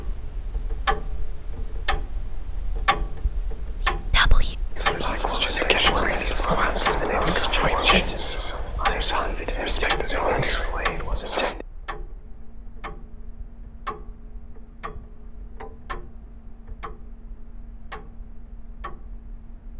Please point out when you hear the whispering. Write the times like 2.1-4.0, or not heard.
4.1-11.7.